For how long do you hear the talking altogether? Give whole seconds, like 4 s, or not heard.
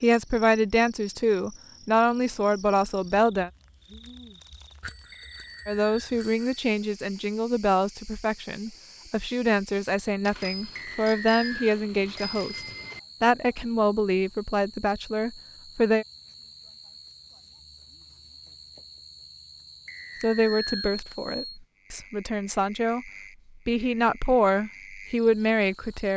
20 s.